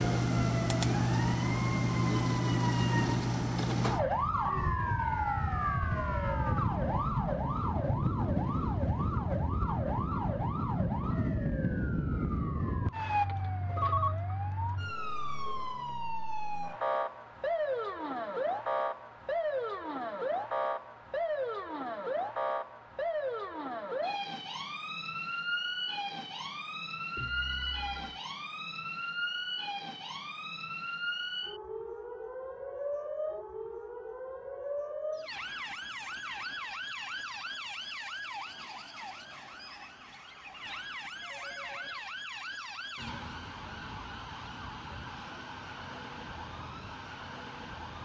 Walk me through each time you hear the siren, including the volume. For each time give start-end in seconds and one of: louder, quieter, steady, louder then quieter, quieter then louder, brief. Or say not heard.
0.0-48.0 quieter.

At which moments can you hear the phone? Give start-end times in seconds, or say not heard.
13.2-14.2, 27.1-28.2, 41.1-42.0.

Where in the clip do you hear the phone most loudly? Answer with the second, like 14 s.
14 s.